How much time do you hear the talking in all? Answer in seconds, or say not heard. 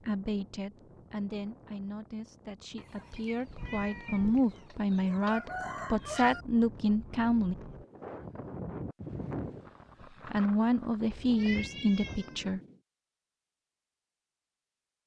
10 s.